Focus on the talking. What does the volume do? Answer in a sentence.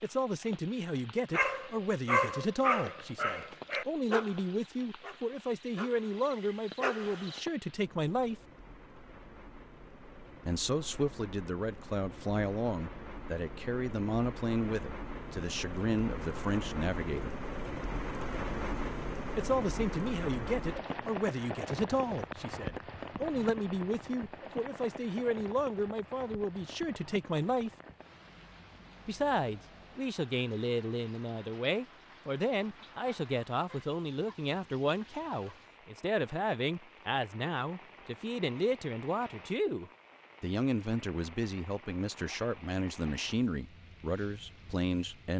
The volume of the talking stays about the same.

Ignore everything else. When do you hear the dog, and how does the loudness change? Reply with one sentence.
You can hear the dog from 1.3 to 7.4 s, getting quieter then louder.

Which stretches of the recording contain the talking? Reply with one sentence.
The talking can be heard from 0.0 to 8.3 s, from 10.4 to 17.4 s, from 19.4 to 27.7 s and from 29.1 to 45.3 s.